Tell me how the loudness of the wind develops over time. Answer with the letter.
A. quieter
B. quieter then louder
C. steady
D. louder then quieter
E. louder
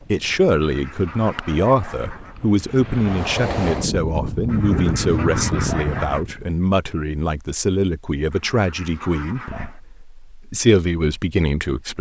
E.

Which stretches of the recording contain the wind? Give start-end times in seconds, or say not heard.
0.0-6.5.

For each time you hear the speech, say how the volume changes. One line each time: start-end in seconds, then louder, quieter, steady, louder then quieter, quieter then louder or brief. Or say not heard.
0.1-11.9 steady.